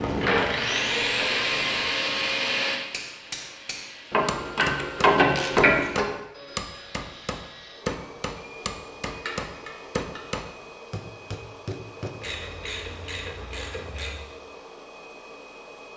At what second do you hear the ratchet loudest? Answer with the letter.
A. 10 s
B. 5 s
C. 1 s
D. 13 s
B.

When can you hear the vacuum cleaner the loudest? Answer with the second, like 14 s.
1 s.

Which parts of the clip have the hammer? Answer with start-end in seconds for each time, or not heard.
2.8-12.2.